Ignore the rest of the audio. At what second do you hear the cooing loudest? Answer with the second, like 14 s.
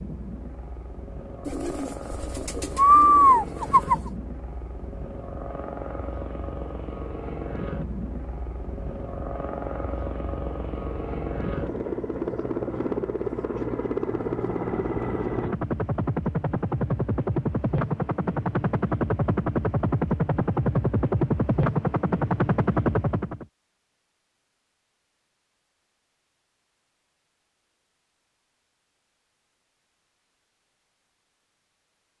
3 s.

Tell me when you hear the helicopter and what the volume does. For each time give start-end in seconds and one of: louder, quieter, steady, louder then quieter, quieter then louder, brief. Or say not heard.
0.0-23.4 louder.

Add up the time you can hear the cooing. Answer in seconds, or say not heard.
3 s.